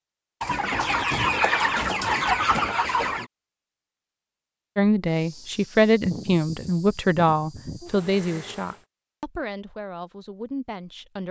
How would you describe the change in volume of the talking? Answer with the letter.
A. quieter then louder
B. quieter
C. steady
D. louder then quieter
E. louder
B.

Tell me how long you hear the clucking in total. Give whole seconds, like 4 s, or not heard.
5 s.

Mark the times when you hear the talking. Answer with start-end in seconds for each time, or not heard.
4.8-11.2.